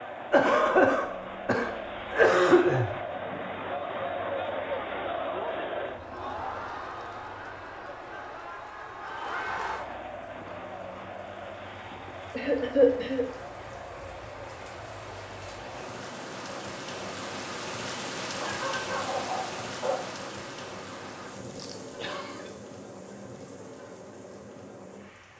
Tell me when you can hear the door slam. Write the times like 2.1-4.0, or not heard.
not heard.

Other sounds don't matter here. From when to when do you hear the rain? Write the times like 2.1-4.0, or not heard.
0.0-25.3.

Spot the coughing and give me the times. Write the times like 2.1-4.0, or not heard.
0.3-2.9, 12.3-13.2, 21.6-22.4.